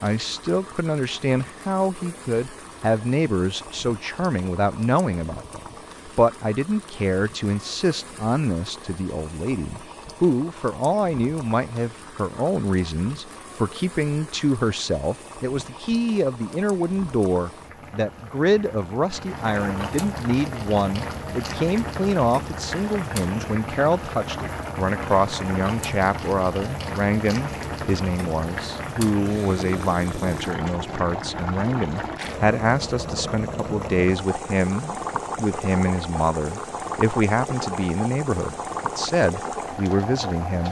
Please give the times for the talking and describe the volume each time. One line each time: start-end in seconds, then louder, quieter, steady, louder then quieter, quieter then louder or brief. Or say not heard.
0.0-40.6 steady.